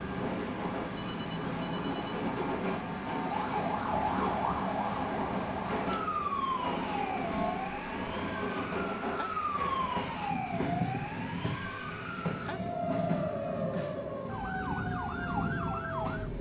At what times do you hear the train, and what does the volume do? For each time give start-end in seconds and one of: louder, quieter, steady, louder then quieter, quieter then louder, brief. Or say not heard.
0.0-16.3 steady.